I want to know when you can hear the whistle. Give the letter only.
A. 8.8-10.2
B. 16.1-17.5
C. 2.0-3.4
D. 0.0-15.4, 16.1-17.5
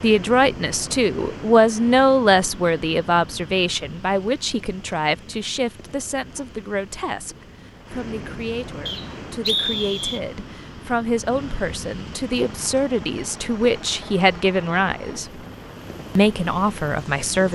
A.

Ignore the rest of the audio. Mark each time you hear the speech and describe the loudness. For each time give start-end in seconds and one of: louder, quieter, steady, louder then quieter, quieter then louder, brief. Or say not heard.
0.0-15.4 quieter then louder
16.1-17.5 brief.